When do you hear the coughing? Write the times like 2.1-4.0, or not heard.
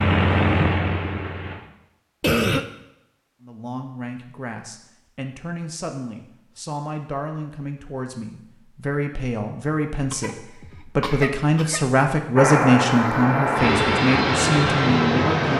2.2-2.6, 10.1-12.0.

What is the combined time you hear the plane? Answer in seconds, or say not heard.
5 s.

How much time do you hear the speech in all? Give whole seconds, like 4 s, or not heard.
12 s.